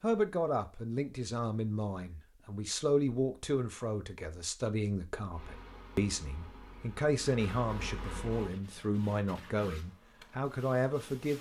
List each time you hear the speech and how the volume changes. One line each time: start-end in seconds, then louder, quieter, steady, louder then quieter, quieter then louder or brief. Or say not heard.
0.0-11.3 steady.